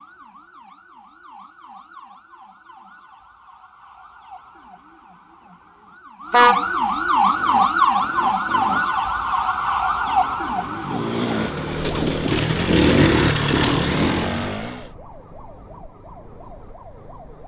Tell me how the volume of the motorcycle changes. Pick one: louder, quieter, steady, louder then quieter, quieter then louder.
quieter then louder.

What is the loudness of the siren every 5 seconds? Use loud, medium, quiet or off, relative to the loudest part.
quiet, loud, medium, quiet.